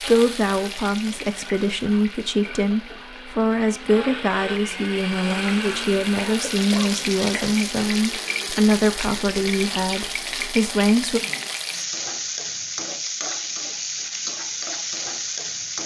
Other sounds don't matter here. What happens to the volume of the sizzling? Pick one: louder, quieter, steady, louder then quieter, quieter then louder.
louder.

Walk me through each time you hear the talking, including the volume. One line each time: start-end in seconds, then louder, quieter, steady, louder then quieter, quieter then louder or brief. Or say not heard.
0.0-11.2 steady.